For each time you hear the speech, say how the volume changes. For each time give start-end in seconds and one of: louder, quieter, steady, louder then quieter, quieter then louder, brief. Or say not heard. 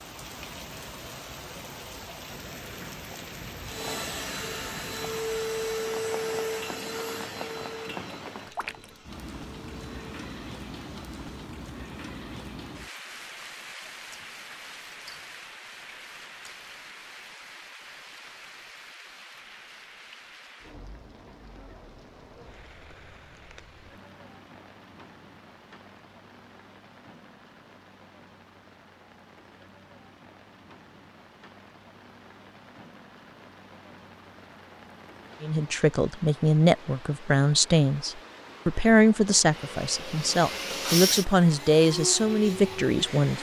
35.4-43.3 steady.